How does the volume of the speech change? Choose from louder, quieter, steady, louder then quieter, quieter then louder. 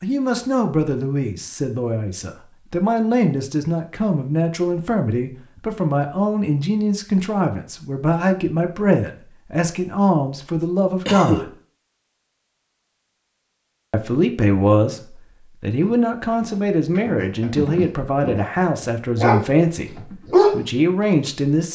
steady.